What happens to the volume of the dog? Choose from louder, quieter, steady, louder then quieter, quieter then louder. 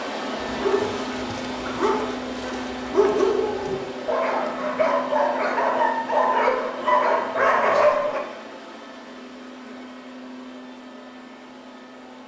louder.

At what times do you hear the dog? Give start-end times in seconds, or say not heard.
0.4-8.2.